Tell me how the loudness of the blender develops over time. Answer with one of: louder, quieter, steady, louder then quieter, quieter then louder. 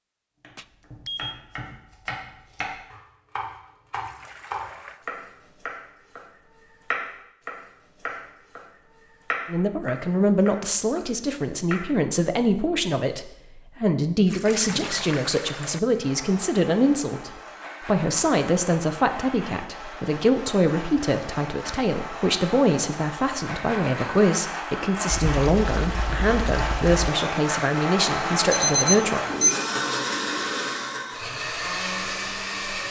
louder.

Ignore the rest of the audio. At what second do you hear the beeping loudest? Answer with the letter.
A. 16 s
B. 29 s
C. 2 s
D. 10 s
B.